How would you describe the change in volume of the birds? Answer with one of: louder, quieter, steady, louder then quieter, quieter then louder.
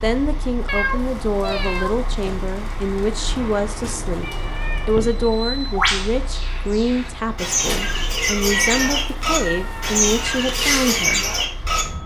louder.